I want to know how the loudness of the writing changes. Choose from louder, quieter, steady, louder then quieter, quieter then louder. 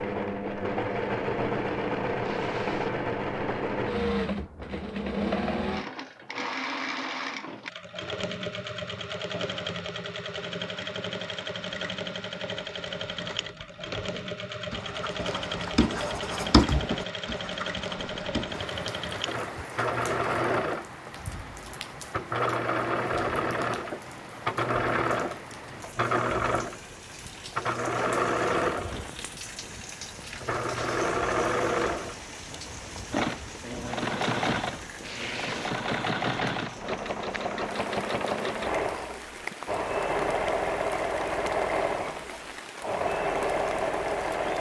louder then quieter.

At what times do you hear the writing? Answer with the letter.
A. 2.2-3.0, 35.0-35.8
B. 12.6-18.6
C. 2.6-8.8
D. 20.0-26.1
B.